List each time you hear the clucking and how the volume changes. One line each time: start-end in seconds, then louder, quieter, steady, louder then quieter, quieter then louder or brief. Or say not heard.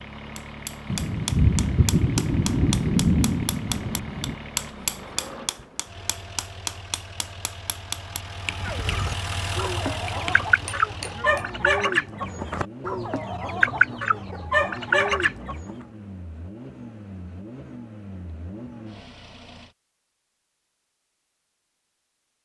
8.6-15.7 louder.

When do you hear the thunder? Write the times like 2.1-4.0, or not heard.
0.9-4.3.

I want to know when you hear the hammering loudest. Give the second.
5 s.